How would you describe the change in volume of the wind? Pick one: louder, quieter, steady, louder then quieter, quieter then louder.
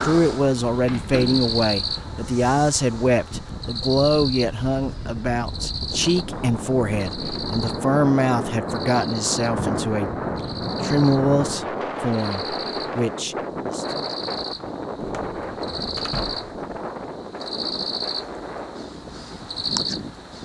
louder then quieter.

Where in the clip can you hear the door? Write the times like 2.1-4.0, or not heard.
0.8-1.5, 15.0-16.6.